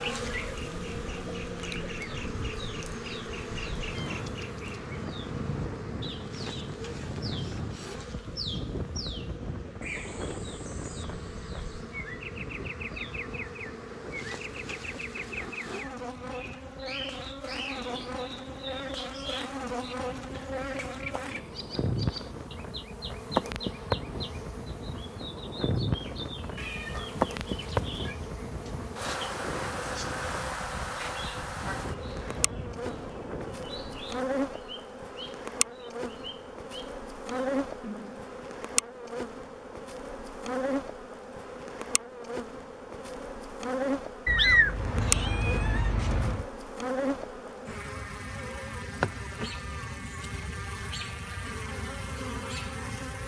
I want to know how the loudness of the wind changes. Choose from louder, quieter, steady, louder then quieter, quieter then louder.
quieter then louder.